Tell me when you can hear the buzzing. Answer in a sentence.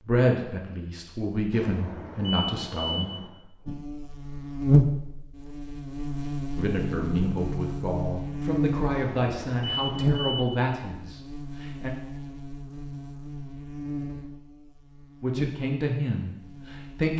The buzzing can be heard from 3.6 to 17.1 s.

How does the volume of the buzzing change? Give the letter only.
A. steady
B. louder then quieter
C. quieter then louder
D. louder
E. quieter
E.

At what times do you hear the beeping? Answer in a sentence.
The beeping can be heard from 1.5 to 3.3 s and from 8.9 to 10.5 s.